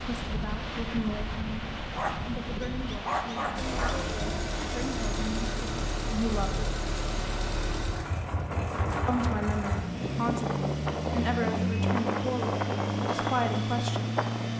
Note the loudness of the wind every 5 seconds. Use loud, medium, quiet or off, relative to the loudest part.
loud, medium, loud.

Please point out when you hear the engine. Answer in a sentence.
The engine can be heard from 3.5 to 14.5 s.